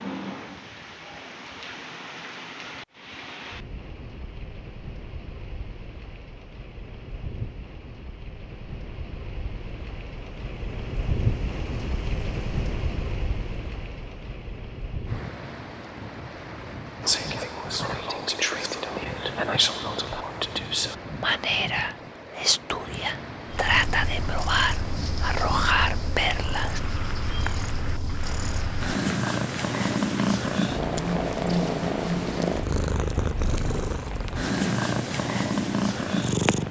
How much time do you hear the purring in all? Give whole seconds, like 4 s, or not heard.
13 s.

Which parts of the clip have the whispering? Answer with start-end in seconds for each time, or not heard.
17.0-26.8.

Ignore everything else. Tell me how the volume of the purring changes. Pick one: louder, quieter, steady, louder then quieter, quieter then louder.
louder.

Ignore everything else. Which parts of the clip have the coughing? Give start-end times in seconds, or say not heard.
not heard.